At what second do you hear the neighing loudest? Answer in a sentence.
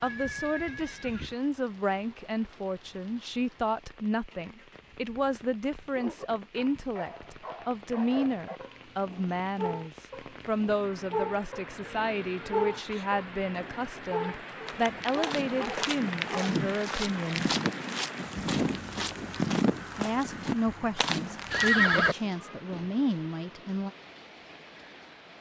The volume of the neighing peaks at 22 seconds.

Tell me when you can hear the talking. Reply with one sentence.
The talking can be heard from 0.0 to 17.5 s and from 19.9 to 23.9 s.